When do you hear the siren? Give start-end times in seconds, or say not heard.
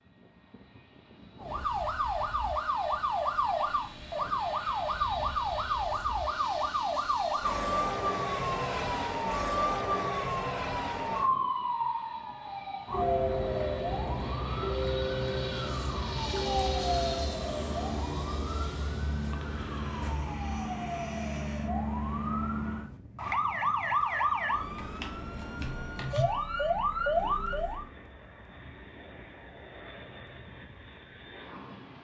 1.4-27.9.